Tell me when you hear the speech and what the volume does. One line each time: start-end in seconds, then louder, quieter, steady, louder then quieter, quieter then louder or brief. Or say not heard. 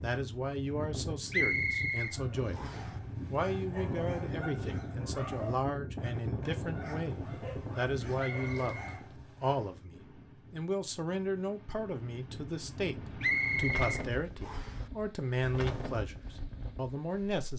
0.0-2.6 brief
3.3-17.5 steady.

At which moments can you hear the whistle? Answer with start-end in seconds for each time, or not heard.
1.3-2.9, 8.2-9.8, 13.2-14.8.